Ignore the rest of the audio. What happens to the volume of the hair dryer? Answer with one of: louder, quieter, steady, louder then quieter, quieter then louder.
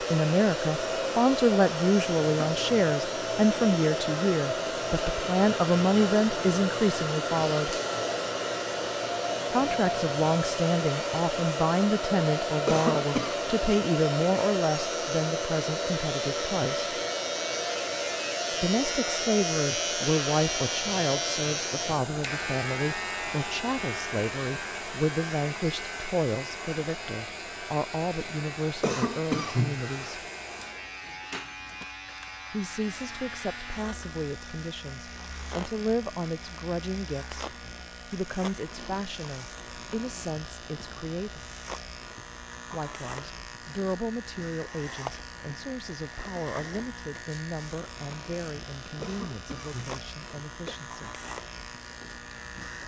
quieter.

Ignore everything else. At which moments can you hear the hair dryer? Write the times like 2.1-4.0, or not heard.
0.0-52.5.